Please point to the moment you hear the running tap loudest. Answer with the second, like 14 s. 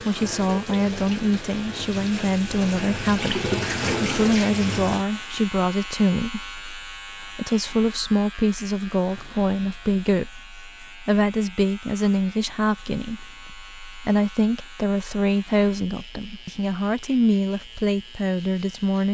4 s.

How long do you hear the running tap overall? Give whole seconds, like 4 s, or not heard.
5 s.